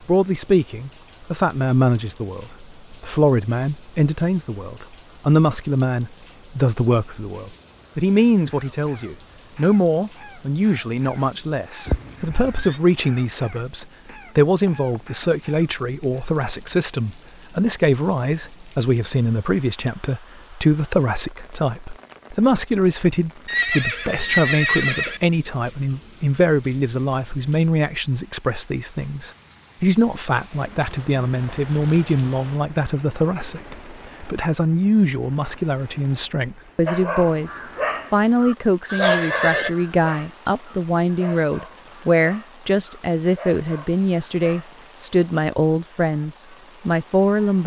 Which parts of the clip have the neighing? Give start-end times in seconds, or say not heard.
11.8-12.8, 23.4-25.2, 38.9-39.7.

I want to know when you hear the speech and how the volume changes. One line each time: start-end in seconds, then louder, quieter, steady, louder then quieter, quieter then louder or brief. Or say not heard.
0.1-47.6 steady.